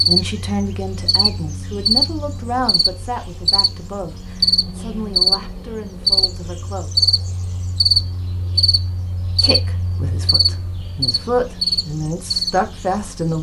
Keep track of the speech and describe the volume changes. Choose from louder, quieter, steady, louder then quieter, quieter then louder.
quieter then louder.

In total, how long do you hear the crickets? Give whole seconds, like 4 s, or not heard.
13 s.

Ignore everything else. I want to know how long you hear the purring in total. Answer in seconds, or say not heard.
not heard.